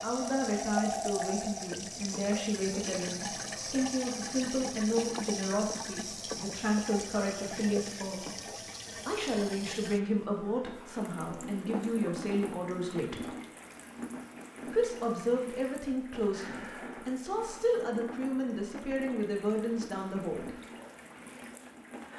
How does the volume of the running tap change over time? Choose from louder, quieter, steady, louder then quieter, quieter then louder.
quieter.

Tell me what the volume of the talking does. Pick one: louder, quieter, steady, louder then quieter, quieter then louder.
steady.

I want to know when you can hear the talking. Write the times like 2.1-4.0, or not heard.
0.0-8.2, 9.1-13.3, 14.7-20.6.